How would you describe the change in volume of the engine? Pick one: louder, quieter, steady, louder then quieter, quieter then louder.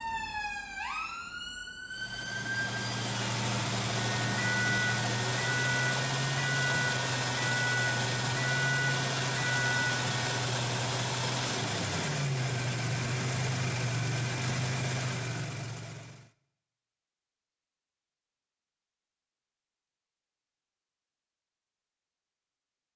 steady.